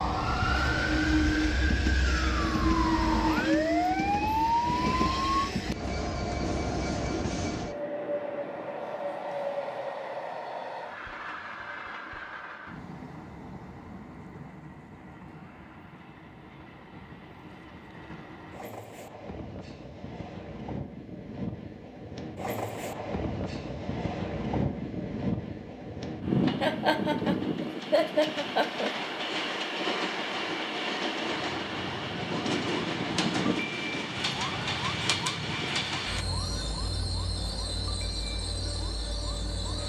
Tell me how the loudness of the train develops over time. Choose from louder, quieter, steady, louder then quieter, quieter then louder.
quieter then louder.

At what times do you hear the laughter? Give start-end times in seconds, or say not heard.
26.6-28.9.